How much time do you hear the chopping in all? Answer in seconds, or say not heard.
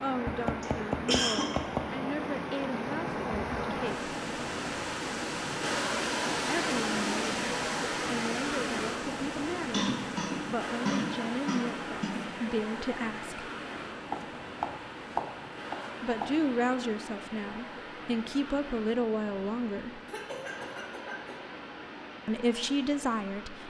4 s.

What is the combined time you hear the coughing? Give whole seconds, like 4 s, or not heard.
5 s.